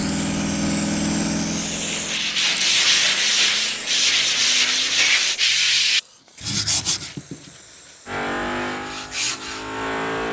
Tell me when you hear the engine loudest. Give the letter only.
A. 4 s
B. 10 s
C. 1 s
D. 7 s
C.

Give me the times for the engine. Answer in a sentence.
You can hear the engine from 0.0 to 5.2 s and from 8.1 to 10.2 s.